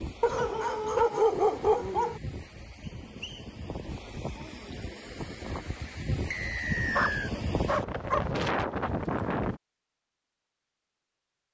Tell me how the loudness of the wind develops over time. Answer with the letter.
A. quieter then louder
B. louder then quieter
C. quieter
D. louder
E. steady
D.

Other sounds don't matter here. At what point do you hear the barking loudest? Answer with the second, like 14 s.
1 s.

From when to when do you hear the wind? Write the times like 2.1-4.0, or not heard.
0.0-9.6.